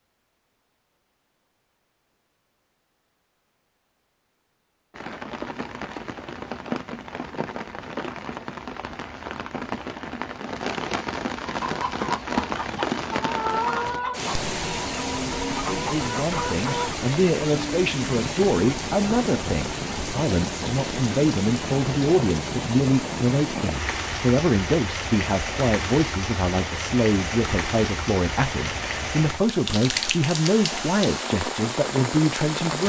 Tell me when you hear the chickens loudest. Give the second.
14 s.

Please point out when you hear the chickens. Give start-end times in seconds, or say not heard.
11.4-17.1.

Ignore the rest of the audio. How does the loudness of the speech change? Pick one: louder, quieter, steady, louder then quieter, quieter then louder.
steady.